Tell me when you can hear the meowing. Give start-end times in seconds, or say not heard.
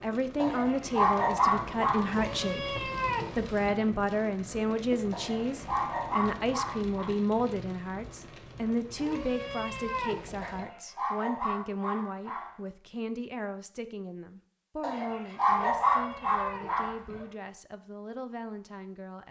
2.0-3.8, 8.9-10.7, 15.6-17.2.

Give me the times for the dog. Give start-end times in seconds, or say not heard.
0.4-2.0, 5.1-7.1, 10.4-12.6, 14.8-17.2.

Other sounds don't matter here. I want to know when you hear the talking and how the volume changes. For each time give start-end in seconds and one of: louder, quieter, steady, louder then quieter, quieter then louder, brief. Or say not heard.
0.0-19.2 quieter.